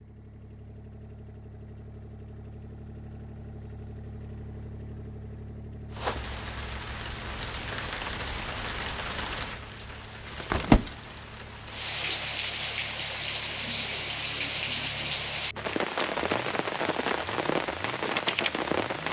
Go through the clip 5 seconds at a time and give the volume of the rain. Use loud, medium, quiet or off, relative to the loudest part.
off, medium, loud, loud.